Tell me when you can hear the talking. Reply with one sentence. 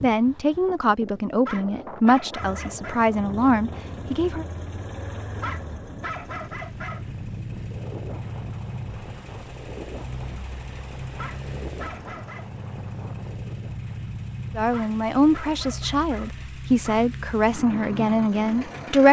The talking can be heard from 0.0 to 4.5 s and from 14.6 to 19.0 s.